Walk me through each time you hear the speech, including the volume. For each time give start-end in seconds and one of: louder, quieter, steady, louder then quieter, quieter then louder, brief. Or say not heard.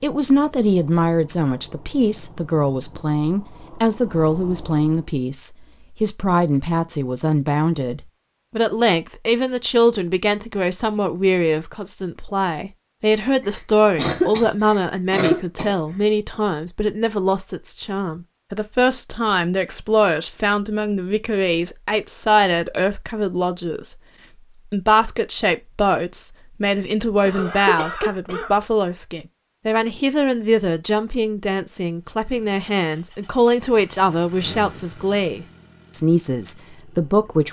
0.0-24.0 steady
24.6-37.4 steady.